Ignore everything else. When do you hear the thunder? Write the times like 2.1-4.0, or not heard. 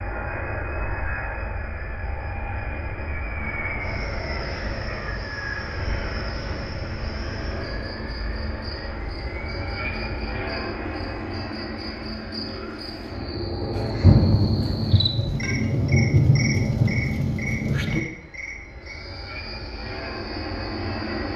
14.0-18.0.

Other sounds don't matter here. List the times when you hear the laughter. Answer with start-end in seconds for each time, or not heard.
not heard.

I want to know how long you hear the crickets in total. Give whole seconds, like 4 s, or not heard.
21 s.